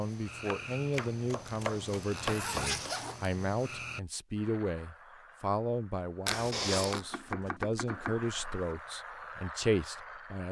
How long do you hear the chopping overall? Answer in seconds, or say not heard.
4 s.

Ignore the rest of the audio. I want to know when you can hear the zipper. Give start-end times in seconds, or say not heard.
1.4-3.2, 6.2-7.0.